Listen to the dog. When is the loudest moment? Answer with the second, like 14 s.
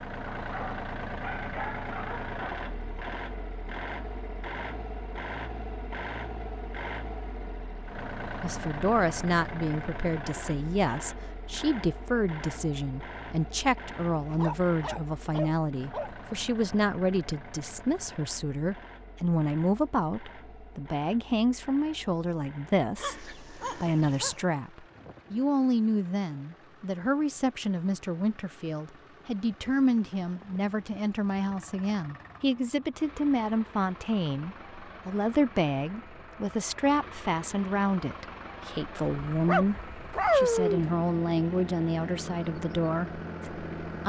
40 s.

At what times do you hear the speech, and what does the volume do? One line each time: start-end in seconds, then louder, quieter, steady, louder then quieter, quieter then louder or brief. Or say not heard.
8.4-44.0 steady.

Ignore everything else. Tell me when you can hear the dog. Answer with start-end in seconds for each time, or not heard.
0.2-2.5, 14.2-16.1, 22.9-24.4, 39.3-40.9.